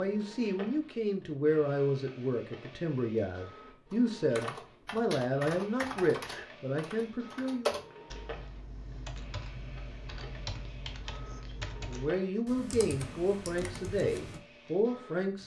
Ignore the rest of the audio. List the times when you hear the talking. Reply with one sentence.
The talking can be heard from 0.0 to 7.8 s and from 11.8 to 15.4 s.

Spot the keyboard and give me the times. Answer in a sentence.
You can hear the keyboard from 3.9 to 14.4 s.